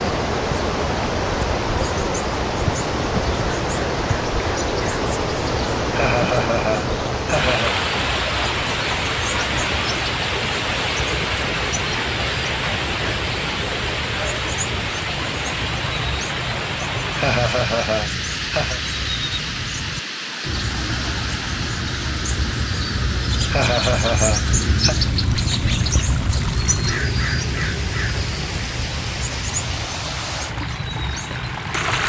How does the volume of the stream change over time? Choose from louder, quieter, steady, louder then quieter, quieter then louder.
quieter.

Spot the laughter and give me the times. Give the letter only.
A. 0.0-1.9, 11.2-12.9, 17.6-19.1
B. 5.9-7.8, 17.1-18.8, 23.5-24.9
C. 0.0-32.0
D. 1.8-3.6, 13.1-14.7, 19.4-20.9
B.